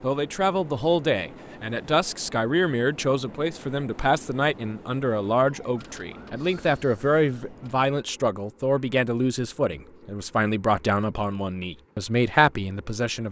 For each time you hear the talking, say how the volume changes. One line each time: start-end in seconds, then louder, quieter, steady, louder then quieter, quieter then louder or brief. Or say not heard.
0.0-13.2 steady.